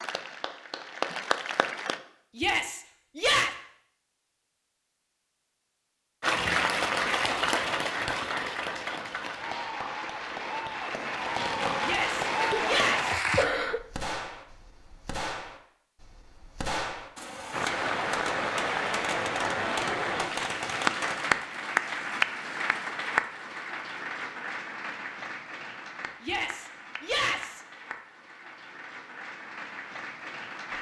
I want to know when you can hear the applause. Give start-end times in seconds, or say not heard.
0.0-2.0, 6.2-13.4, 17.5-30.7.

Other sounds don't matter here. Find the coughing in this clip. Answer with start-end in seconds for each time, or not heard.
12.4-13.8.